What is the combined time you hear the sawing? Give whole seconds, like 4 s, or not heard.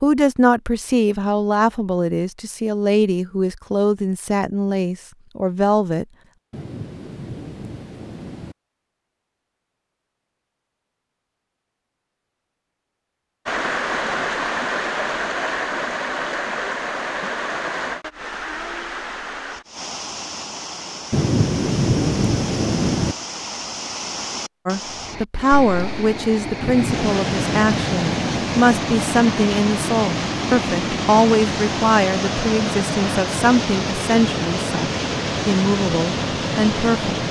not heard.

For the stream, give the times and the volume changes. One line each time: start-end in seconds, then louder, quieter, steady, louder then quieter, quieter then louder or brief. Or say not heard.
13.4-37.2 quieter then louder.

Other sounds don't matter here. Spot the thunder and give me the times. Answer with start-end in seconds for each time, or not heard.
6.5-8.6, 21.1-23.1, 26.6-28.6.